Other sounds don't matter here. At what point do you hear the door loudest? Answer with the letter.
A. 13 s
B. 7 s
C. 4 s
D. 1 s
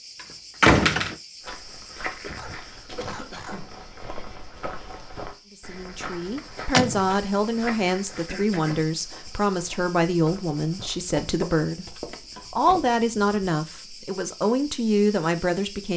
D.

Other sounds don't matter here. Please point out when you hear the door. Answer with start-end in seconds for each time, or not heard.
0.6-1.1, 6.3-7.0, 11.0-13.3.